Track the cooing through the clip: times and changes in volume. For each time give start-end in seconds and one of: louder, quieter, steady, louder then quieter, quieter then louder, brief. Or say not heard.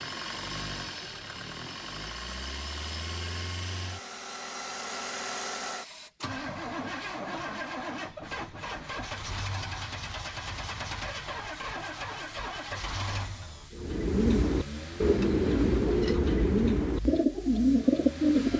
13.7-18.5 steady.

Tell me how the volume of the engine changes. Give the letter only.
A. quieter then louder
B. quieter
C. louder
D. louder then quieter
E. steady
B.